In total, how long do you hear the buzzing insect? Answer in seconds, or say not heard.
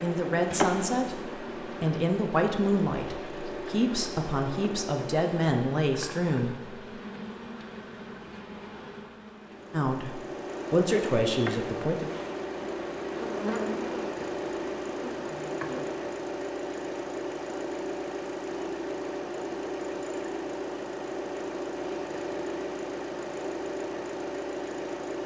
16 s.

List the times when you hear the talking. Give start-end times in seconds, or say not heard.
0.0-6.5, 9.7-12.1.